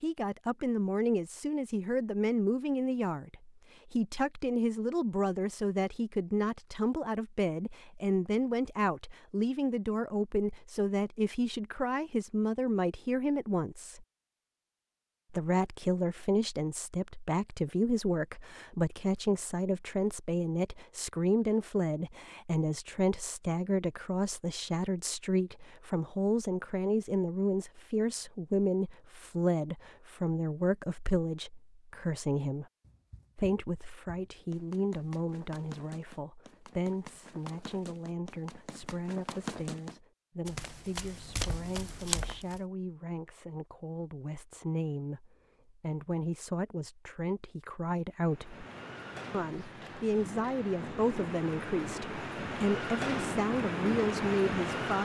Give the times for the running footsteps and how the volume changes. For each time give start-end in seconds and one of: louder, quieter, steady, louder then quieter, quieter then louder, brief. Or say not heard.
32.8-42.6 louder.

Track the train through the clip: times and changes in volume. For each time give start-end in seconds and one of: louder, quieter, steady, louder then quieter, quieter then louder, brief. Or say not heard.
48.2-55.0 louder.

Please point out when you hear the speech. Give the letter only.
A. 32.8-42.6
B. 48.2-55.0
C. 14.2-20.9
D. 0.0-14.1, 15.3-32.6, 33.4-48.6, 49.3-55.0
D.